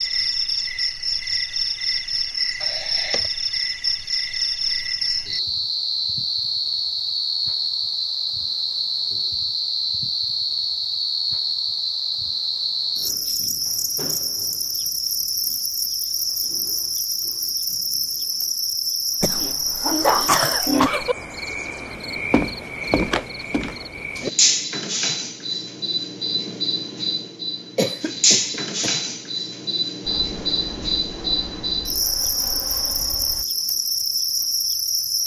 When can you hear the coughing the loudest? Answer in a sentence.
The loudest moment of the coughing is at 20 seconds.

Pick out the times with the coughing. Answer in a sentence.
You can hear the coughing from 2.6 to 3.3 s, from 19.2 to 21.1 s and from 27.8 to 28.9 s.